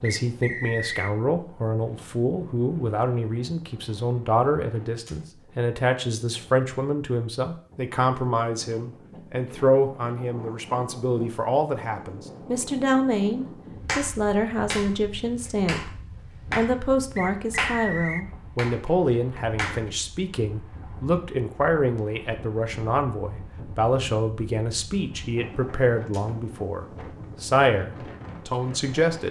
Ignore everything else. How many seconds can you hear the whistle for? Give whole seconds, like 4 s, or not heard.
2 s.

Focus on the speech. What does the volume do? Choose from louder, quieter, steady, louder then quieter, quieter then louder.
steady.